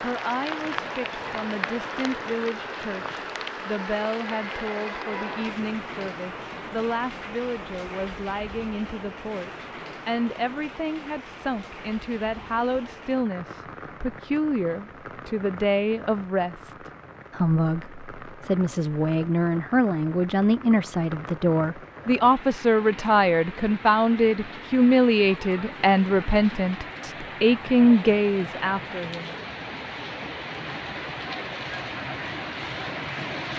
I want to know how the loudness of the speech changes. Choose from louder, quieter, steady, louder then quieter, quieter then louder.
louder.